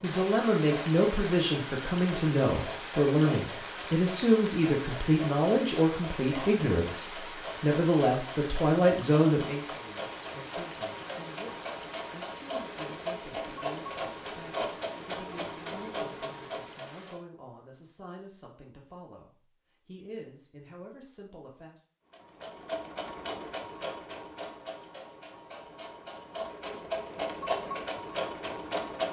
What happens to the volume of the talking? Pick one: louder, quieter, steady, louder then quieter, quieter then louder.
quieter.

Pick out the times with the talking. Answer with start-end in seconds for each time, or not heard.
0.0-21.8.